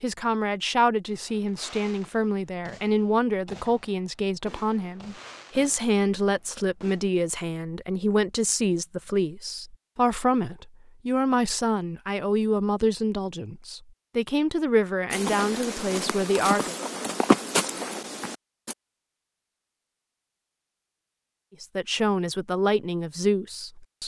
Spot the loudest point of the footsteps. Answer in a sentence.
The volume of the footsteps peaks at 17 seconds.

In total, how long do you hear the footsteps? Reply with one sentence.
You can hear the footsteps for 4 seconds altogether.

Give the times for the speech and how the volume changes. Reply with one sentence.
You can hear the speech from 0.0 to 16.8 s, at a steady volume; and briefly from 21.6 to 24.0 s.